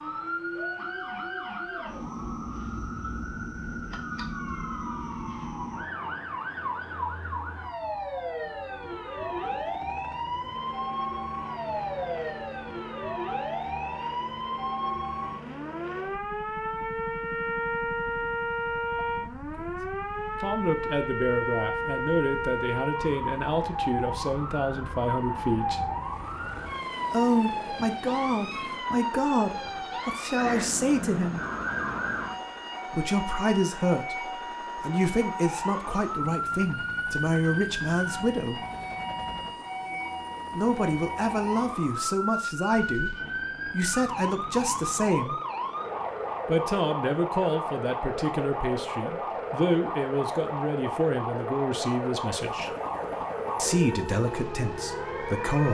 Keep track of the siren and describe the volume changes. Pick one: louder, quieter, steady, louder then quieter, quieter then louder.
steady.